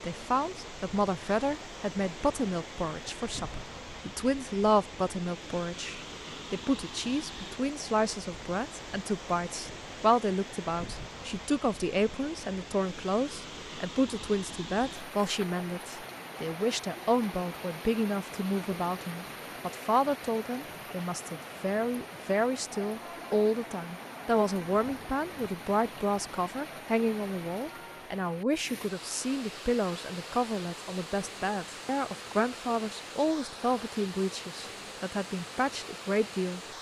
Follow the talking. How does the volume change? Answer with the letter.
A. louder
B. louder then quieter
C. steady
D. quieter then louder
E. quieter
C.